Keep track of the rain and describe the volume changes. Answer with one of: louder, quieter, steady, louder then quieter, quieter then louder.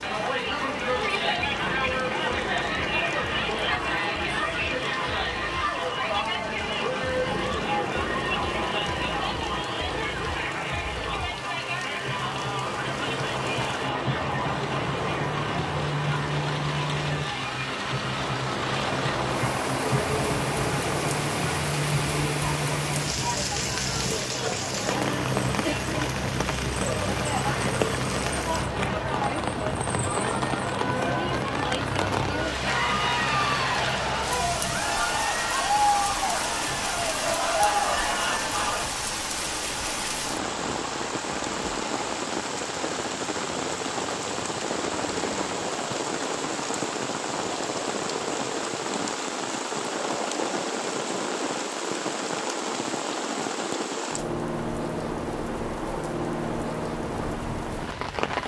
louder.